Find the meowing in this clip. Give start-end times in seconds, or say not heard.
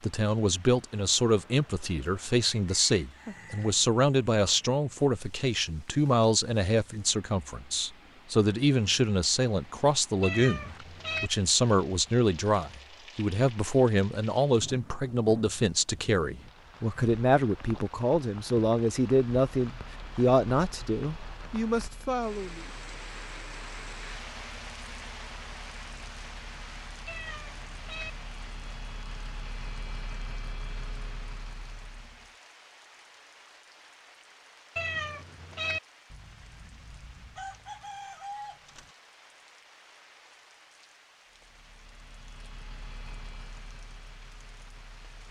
10.2-11.3, 27.1-28.1, 34.8-35.8.